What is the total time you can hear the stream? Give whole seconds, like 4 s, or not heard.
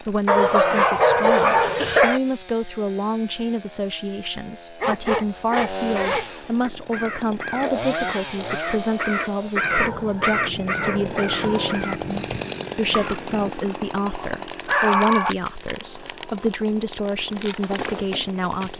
not heard.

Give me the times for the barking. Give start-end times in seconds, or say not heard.
0.2-2.2, 4.8-6.3, 9.7-11.9, 14.1-15.3.